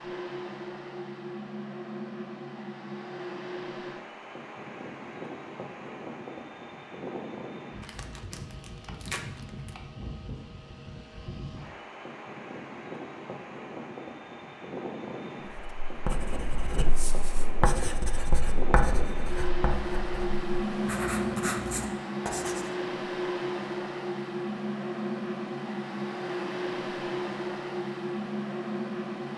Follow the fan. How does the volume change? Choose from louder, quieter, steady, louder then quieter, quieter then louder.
louder.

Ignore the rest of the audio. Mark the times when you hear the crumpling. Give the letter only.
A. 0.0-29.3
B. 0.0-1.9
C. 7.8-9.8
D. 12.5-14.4
C.